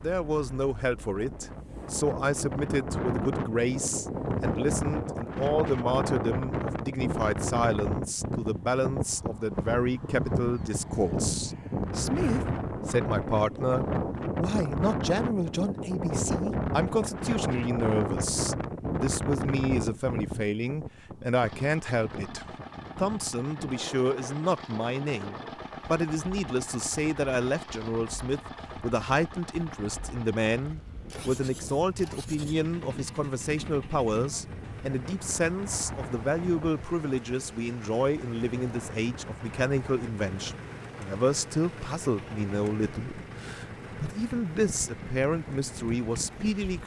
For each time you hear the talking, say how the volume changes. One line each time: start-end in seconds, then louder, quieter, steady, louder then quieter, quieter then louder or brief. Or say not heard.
0.0-46.8 steady.